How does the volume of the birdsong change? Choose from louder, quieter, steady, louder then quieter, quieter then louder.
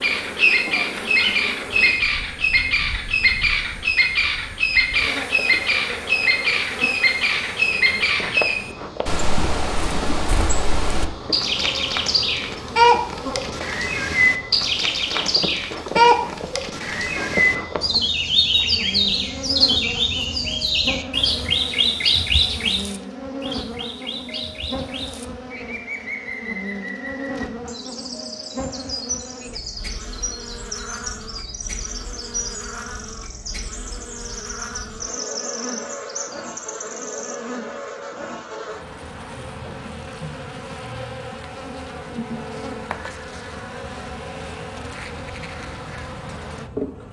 quieter.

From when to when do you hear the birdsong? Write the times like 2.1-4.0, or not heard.
0.0-37.4.